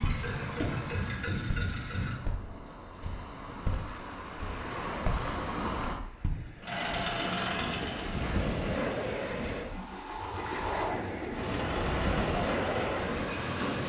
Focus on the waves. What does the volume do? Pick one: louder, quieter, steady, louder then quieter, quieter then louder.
louder.